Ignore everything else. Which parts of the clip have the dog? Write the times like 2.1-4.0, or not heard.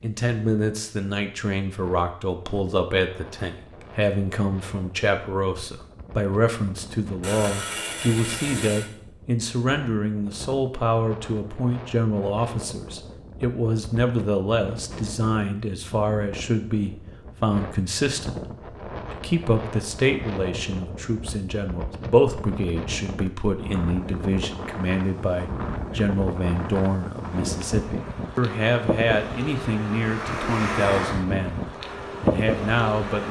not heard.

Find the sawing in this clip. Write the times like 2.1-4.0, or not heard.
7.2-8.9.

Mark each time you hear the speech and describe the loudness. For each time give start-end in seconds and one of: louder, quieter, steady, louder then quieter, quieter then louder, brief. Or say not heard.
0.0-31.6 steady
32.2-33.2 brief.